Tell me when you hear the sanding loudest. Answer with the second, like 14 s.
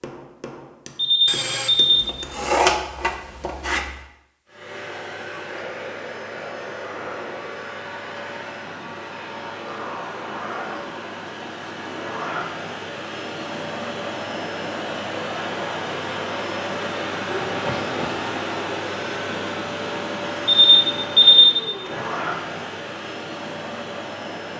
3 s.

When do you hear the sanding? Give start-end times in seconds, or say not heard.
1.2-4.0.